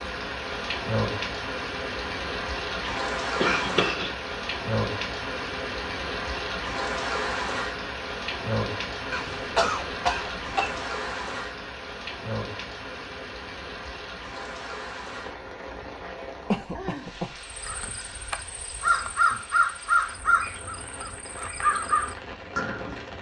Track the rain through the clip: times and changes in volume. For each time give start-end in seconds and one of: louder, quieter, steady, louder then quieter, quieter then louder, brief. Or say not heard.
0.0-23.1 quieter.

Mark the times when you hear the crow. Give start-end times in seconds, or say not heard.
17.4-23.1.